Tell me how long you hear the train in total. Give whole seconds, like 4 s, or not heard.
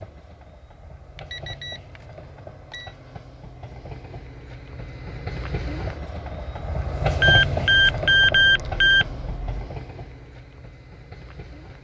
12 s.